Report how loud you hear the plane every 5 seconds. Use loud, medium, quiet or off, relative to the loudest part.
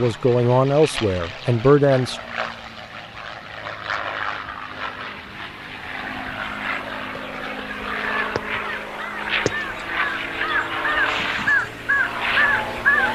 medium, loud, loud.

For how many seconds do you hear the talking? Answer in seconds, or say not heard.
2 s.